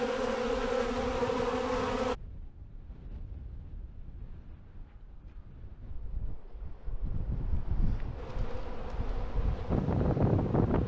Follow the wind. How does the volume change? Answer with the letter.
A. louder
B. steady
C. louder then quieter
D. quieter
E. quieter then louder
A.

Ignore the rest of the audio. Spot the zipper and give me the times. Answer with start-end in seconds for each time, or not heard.
not heard.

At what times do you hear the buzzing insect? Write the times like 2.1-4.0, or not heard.
0.0-2.1, 8.2-10.8.